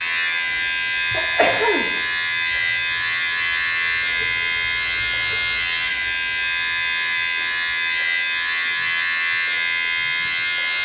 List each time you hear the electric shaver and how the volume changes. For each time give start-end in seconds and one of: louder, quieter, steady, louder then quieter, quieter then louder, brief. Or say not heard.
0.0-10.8 steady.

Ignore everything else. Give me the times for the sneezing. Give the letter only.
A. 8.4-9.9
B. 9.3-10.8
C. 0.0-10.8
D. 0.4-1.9
D.